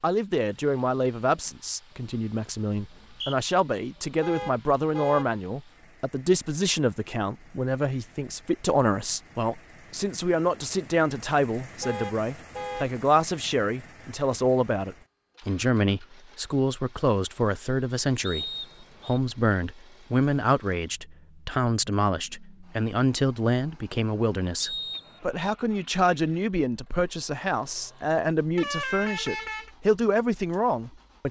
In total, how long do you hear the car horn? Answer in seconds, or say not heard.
3 s.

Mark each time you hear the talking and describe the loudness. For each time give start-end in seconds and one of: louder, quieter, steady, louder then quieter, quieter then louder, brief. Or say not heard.
0.0-31.2 steady.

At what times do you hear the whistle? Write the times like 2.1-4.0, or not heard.
2.8-3.5, 18.2-19.2, 24.6-25.4.